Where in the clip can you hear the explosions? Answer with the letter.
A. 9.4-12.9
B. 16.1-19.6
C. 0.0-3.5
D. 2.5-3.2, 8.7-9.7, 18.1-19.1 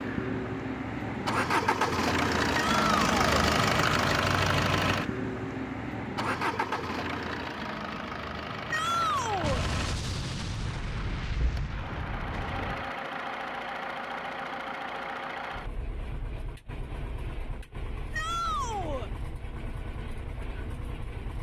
A.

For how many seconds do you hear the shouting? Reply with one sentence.
The shouting can be heard for 3 seconds in total.